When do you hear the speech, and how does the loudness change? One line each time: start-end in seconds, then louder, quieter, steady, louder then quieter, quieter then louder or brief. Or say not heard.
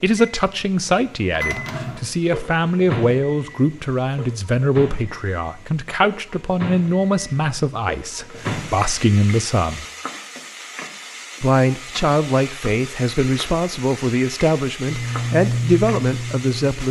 0.0-9.8 steady
11.4-16.8 steady.